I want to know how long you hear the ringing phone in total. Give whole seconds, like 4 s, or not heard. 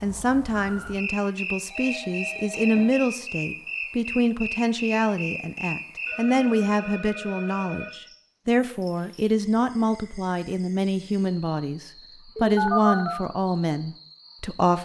4 s.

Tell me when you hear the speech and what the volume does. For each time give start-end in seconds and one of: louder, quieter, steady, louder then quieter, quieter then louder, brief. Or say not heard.
0.0-14.8 steady.